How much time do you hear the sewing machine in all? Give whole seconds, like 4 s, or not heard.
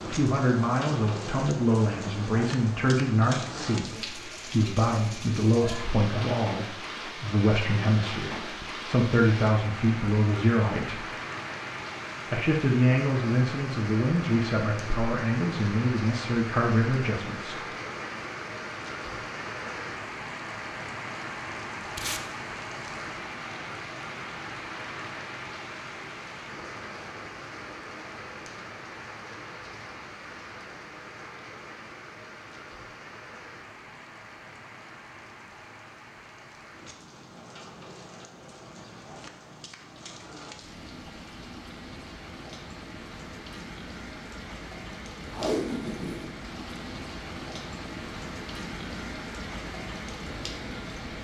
not heard.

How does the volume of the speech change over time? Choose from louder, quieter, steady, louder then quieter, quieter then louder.
steady.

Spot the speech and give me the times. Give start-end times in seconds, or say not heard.
0.0-11.1, 12.3-17.6.